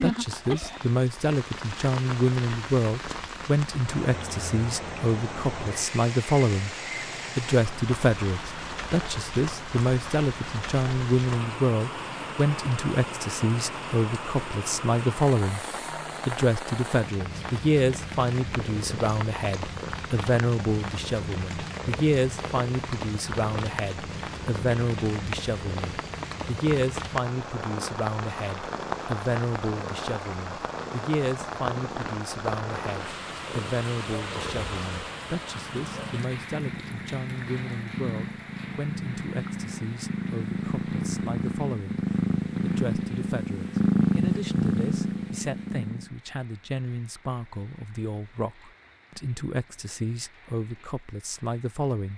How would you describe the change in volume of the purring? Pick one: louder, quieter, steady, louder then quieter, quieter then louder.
louder.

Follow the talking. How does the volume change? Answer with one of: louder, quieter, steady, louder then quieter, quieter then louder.
quieter.